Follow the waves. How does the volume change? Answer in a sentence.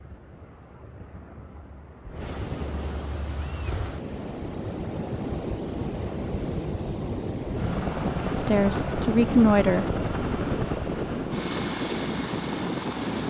The loudness of the waves goes up.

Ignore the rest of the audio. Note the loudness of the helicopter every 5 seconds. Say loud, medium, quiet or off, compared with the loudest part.
off, loud, loud.